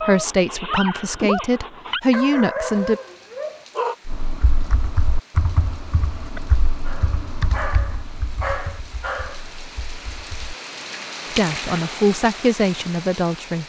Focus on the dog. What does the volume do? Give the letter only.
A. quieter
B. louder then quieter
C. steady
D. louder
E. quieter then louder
C.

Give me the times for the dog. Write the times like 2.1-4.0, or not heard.
0.0-4.0, 6.3-9.5.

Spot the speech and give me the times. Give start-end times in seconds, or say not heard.
0.0-3.0, 11.3-13.6.